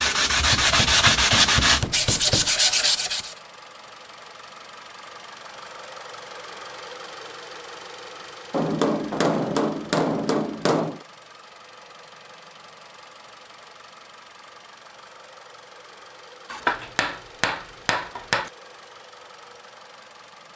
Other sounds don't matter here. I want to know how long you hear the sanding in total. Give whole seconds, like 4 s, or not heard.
3 s.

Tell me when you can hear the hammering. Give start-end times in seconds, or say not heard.
0.5-2.5, 8.5-11.0, 16.5-18.5.